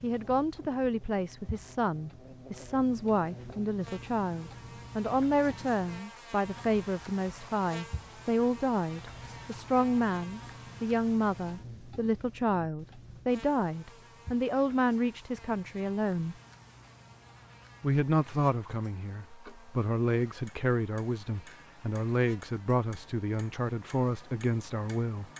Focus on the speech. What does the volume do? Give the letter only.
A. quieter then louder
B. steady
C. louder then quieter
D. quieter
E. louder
B.